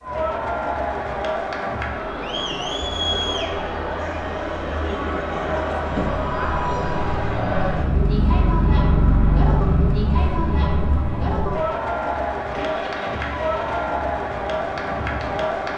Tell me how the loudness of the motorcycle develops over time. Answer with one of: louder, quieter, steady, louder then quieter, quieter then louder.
louder then quieter.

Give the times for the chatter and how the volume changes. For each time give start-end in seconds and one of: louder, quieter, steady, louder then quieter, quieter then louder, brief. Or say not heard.
0.0-15.7 steady.